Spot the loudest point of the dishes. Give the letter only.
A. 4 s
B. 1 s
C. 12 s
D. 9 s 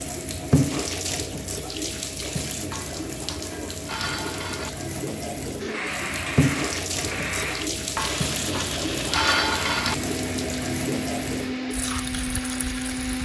D.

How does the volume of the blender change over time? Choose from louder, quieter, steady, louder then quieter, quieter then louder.
steady.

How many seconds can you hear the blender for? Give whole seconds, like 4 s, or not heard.
8 s.